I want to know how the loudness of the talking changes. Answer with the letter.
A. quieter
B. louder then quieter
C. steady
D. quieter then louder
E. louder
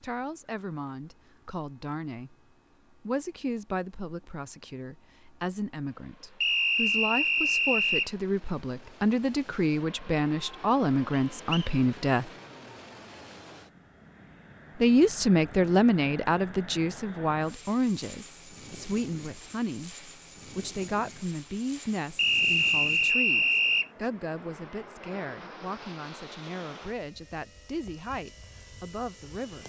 B.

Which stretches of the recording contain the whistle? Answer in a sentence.
The whistle can be heard from 6.4 to 8.1 s, from 11.1 to 11.7 s and from 22.1 to 23.9 s.